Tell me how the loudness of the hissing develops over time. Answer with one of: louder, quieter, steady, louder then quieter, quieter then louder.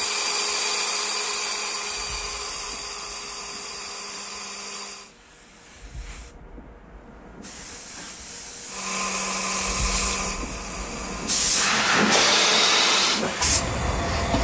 louder.